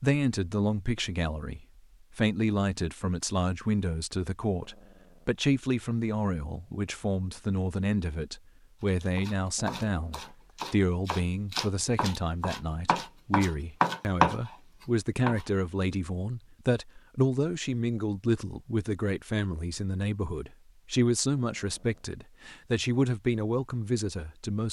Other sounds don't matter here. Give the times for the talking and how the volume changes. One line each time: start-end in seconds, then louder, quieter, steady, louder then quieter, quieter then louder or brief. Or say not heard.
0.0-24.6 steady.